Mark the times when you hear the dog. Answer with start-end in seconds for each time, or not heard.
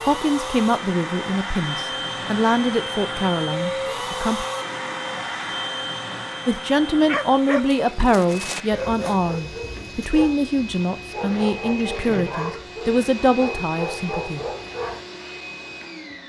7.0-15.0.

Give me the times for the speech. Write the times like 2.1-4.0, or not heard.
0.0-4.5, 6.5-14.4.